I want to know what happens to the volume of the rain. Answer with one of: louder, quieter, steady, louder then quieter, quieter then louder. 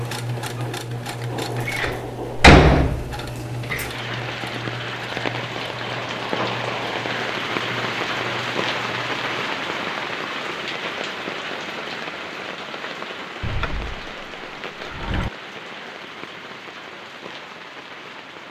louder then quieter.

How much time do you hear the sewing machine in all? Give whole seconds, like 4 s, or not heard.
9 s.